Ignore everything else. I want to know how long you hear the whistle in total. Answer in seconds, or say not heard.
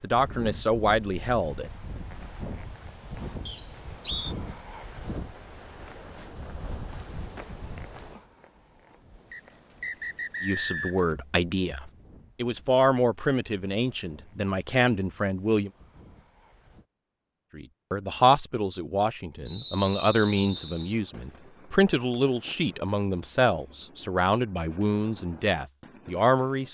4 s.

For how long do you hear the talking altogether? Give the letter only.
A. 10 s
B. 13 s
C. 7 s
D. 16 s
D.